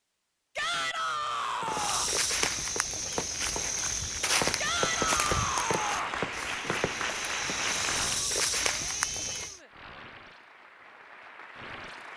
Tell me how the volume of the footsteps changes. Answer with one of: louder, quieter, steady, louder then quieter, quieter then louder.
quieter then louder.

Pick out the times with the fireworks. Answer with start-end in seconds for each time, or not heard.
1.1-7.8.